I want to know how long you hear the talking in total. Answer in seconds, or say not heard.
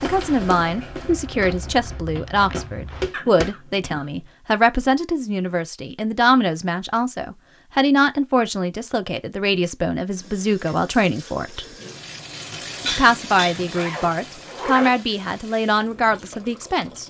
16 s.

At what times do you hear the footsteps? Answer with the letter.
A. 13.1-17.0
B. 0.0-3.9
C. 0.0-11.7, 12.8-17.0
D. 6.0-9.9
B.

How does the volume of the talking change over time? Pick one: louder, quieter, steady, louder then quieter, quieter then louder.
steady.